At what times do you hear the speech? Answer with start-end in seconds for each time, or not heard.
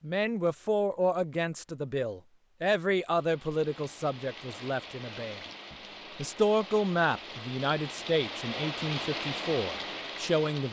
0.0-10.6.